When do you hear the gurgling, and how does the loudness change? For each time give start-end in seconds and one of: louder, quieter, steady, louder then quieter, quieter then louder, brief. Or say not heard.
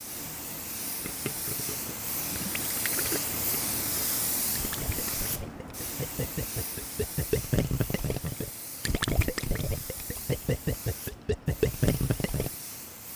1.0-12.5 louder.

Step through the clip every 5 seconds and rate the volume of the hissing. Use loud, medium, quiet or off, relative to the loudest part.
loud, medium, medium.